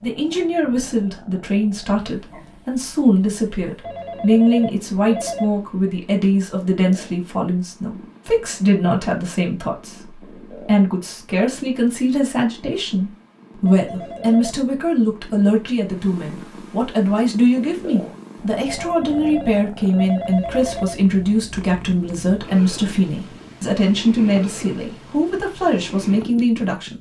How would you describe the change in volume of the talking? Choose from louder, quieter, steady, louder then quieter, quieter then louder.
steady.